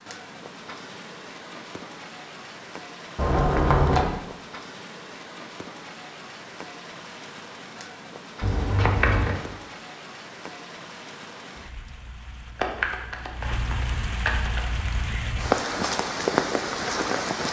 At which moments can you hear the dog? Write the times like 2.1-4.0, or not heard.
not heard.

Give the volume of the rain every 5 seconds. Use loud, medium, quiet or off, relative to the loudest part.
quiet, quiet, quiet, loud.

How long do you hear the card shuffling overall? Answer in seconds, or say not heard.
4 s.